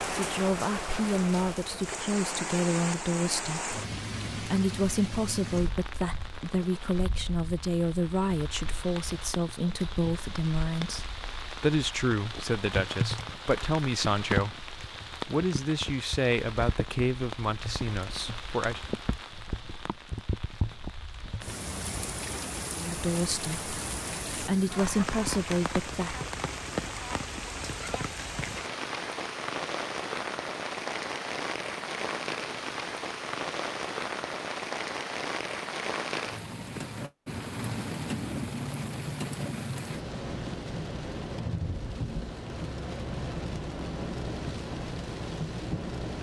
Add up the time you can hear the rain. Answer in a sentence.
You can hear the rain for 46 seconds altogether.